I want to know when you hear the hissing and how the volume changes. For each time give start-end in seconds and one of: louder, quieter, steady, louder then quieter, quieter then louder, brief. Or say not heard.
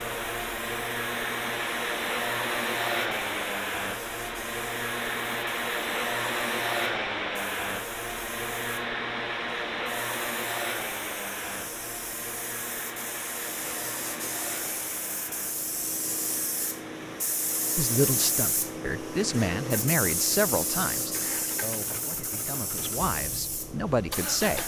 0.0-24.6 louder.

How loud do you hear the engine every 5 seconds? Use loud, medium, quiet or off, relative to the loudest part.
loud, loud, medium, quiet, medium.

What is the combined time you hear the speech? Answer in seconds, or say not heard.
7 s.